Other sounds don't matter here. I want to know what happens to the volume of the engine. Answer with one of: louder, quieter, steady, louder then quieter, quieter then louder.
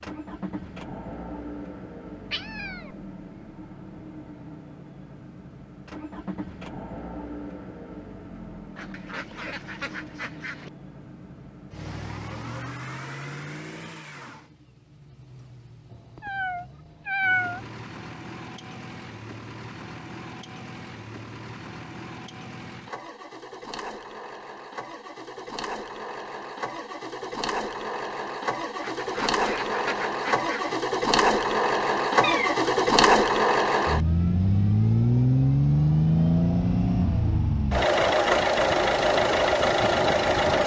louder.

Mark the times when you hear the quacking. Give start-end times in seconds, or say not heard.
8.8-10.7, 28.8-30.8.